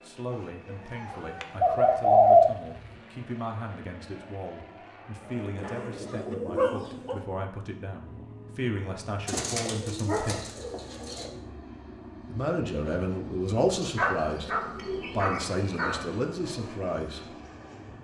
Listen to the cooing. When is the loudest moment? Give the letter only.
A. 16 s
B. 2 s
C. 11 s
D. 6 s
B.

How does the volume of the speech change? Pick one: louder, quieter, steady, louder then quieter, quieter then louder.
louder.